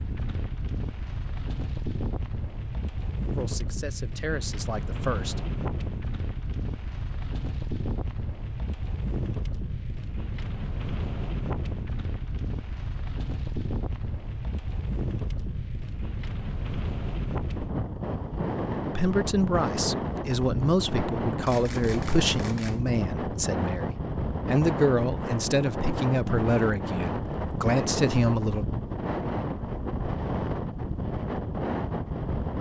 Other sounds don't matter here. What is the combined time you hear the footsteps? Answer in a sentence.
You can't hear the footsteps here.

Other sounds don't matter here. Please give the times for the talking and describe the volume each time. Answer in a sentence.
The talking can be heard briefly from 3.4 to 5.3 s; and from 18.9 to 28.6 s, at a steady volume.